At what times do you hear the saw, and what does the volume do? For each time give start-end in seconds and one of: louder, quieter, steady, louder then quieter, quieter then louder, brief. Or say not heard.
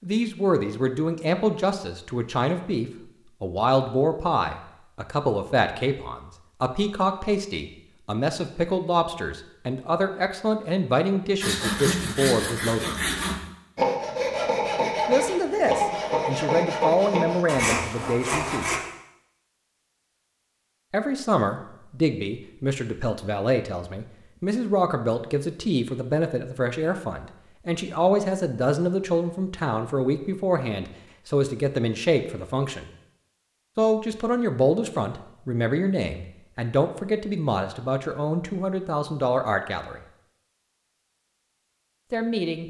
11.4-18.8 steady.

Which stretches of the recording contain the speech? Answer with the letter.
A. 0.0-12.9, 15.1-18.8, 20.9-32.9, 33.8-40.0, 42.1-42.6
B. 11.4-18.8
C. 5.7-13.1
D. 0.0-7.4
A.